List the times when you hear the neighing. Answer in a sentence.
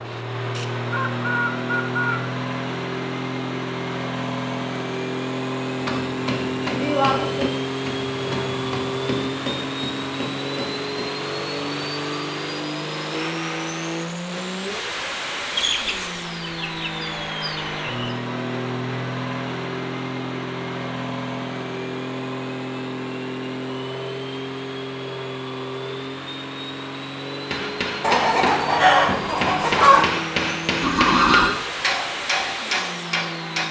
You can hear the neighing from 30.8 to 31.6 s.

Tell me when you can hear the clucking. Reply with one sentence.
The clucking can be heard from 0.6 to 2.2 s, from 15.6 to 18.1 s and from 28.0 to 30.1 s.